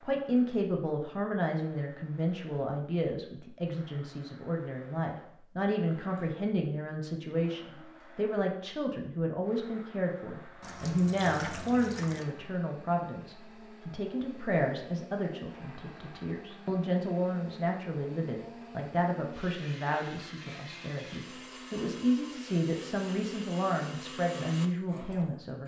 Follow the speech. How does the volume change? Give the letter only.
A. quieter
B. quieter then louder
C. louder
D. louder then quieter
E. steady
E.